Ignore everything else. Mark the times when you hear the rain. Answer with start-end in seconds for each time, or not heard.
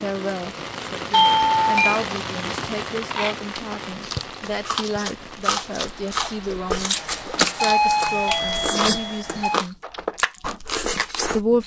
0.0-8.6.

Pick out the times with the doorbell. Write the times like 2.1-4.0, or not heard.
1.1-2.0, 6.9-9.6.